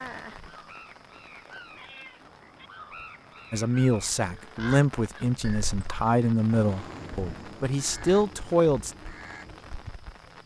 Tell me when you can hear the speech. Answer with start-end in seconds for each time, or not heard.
3.5-8.9.